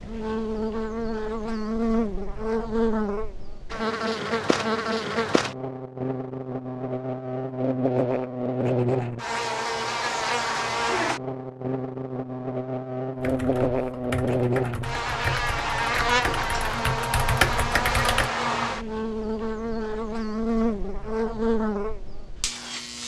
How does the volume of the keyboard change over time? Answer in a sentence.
The loudness of the keyboard goes up.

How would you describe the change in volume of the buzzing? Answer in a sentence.
The loudness of the buzzing stays about the same.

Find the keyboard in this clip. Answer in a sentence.
The keyboard can be heard from 13.2 to 18.3 s.